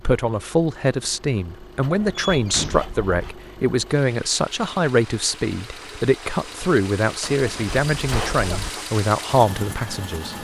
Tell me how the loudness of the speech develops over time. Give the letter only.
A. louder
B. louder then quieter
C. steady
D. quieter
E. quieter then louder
C.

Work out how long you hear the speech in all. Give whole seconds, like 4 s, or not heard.
10 s.